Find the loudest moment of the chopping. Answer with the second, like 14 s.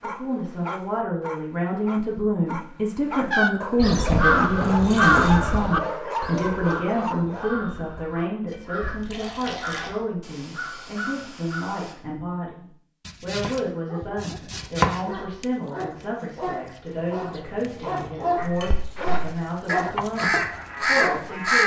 15 s.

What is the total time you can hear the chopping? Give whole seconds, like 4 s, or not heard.
2 s.